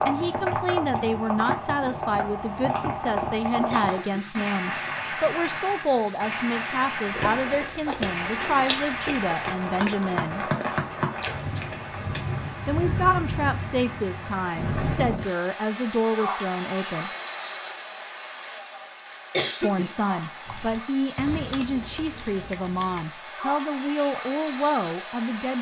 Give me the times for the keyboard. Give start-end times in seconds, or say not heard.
20.4-23.1.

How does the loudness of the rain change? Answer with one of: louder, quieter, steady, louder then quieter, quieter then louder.
quieter.